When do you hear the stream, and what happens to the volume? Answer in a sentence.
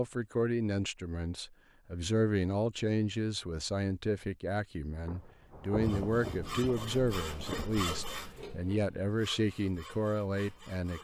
You can't hear the stream here.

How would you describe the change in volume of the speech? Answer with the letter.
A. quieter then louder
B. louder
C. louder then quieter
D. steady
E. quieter
D.